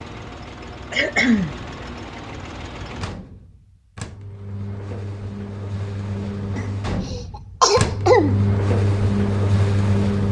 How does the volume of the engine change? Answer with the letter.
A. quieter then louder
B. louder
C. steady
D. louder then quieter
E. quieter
B.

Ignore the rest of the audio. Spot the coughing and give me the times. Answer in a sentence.
The coughing can be heard from 0.9 to 1.6 s and from 6.5 to 8.4 s.